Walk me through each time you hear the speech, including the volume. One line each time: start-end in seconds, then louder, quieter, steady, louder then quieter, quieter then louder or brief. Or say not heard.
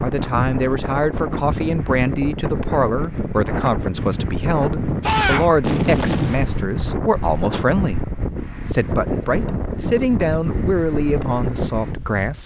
0.0-12.4 steady.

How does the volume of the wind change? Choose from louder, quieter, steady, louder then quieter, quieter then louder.
steady.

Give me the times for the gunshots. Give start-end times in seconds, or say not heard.
5.0-6.6.